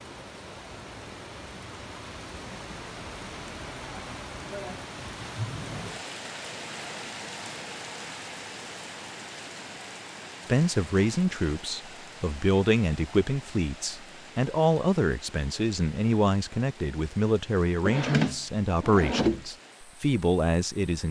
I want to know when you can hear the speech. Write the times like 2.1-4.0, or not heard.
10.4-21.0.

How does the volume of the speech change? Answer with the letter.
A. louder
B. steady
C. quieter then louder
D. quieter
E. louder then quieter
B.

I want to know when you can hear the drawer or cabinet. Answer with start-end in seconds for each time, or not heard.
17.9-19.4.